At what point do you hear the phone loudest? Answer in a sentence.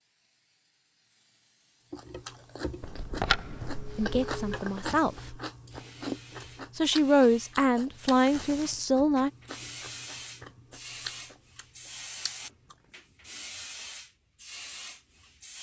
The volume of the phone peaks at 3 seconds.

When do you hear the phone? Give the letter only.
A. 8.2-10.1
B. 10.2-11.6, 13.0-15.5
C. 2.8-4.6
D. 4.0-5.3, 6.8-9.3
C.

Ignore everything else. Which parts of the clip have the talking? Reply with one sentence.
The talking can be heard from 4.0 to 5.3 s and from 6.8 to 9.3 s.